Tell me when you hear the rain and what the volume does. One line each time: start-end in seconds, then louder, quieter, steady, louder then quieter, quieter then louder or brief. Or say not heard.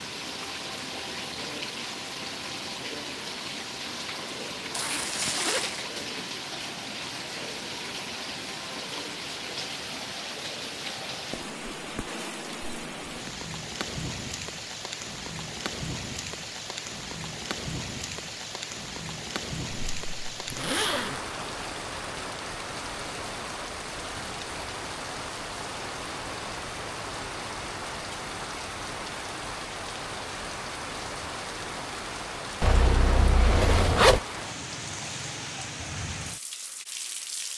0.0-37.5 steady.